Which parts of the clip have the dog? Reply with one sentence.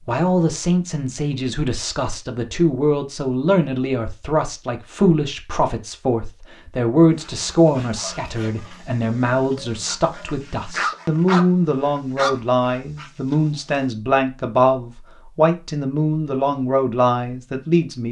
The dog can be heard from 7.2 to 13.8 s.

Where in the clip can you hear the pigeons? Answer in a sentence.
The pigeons can't be heard in this clip.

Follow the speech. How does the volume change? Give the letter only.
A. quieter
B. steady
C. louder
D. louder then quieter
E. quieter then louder
B.